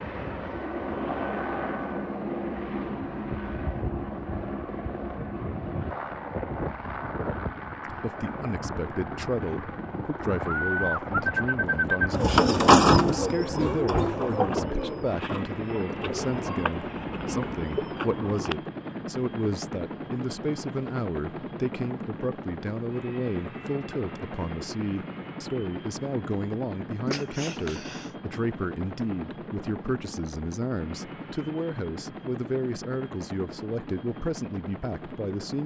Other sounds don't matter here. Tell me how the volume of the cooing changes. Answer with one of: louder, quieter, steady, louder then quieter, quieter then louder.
quieter.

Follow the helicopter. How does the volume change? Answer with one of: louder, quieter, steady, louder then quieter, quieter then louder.
quieter.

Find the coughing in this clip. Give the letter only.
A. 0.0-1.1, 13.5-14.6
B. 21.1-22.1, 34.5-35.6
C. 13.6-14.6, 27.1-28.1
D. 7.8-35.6
C.